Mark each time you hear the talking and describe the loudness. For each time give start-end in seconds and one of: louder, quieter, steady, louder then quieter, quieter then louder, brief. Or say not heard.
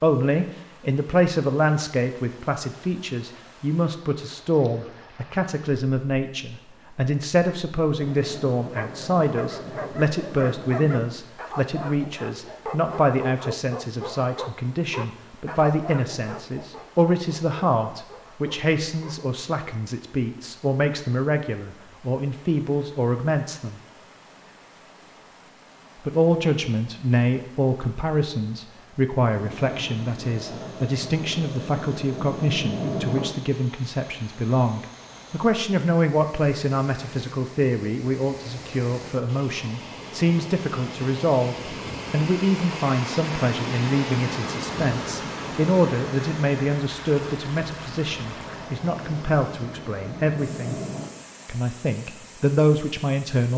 0.0-23.8 steady
26.1-50.8 steady
51.5-53.5 brief.